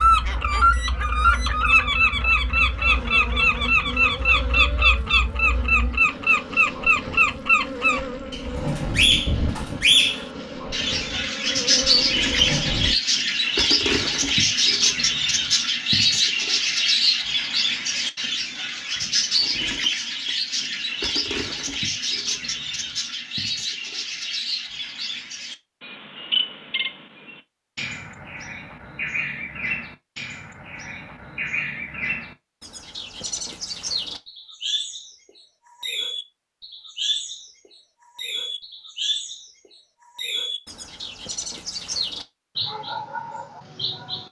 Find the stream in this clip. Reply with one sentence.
The stream can't be heard in this clip.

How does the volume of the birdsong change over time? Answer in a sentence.
The loudness of the birdsong goes down.